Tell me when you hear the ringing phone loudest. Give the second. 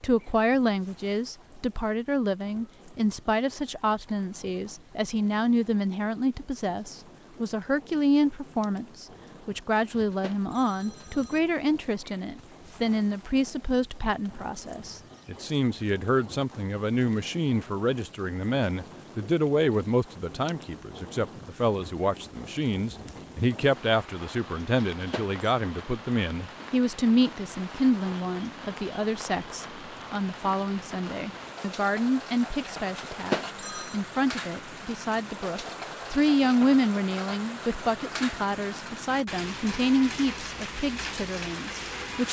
33 s.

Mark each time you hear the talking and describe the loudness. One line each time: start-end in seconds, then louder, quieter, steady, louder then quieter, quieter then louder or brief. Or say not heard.
0.0-42.2 steady.